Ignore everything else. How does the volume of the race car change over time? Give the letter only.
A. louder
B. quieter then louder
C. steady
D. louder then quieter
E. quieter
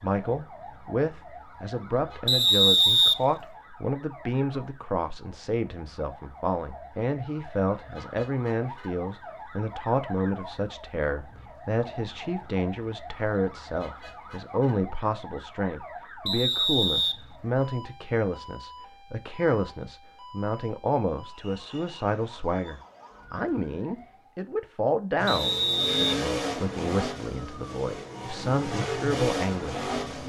B.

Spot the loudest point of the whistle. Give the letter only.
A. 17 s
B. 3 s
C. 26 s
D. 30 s
B.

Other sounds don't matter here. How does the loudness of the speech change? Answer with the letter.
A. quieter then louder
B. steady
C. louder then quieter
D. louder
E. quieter
B.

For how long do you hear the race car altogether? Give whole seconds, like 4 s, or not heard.
5 s.